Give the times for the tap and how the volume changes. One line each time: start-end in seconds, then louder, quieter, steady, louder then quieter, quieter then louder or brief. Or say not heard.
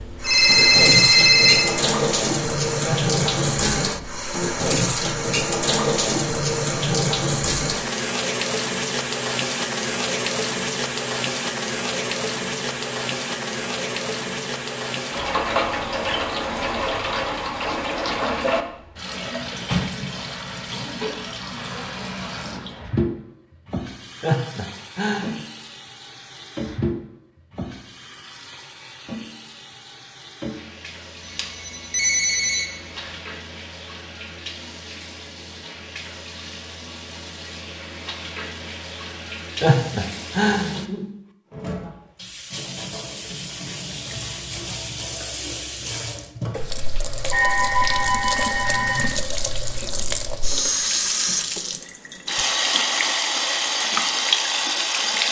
0.0-55.2 quieter then louder.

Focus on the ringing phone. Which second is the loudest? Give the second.
1 s.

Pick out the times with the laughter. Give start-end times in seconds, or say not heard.
2.8-4.5, 24.2-25.4, 39.6-40.8.